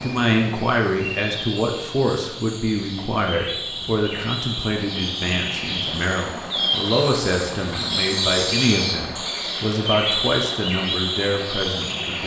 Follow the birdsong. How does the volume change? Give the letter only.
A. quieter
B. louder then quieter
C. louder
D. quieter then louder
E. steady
C.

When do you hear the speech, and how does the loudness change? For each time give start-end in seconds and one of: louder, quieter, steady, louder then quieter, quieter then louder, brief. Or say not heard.
0.0-12.2 steady.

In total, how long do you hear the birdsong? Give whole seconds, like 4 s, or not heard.
12 s.